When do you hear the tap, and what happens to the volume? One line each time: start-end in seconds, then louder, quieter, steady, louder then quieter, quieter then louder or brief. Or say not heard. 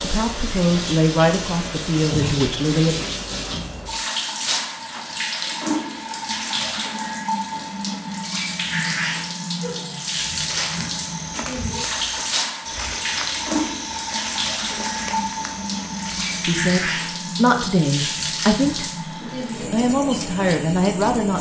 0.0-21.3 steady.